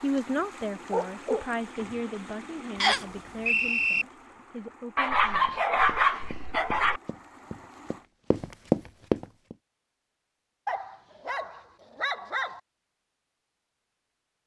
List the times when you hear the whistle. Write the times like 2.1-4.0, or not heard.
2.8-4.0.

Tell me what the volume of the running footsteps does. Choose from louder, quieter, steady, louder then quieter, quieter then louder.
louder.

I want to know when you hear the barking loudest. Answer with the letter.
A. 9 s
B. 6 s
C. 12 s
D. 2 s
B.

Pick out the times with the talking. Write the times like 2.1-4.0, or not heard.
0.0-5.6.